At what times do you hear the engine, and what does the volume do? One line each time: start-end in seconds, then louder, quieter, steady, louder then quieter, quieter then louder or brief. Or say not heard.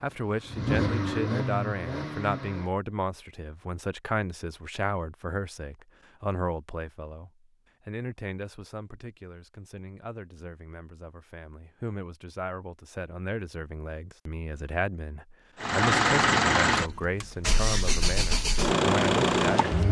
0.0-2.7 brief
15.6-19.8 quieter then louder.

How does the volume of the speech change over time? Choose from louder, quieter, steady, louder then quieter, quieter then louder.
quieter then louder.